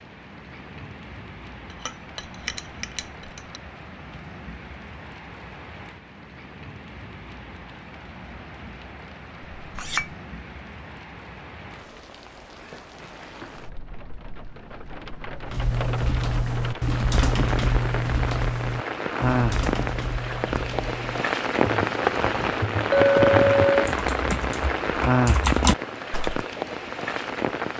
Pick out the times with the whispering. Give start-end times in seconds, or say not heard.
not heard.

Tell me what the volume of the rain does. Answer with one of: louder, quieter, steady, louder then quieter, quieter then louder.
louder.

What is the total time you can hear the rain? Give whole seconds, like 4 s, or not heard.
28 s.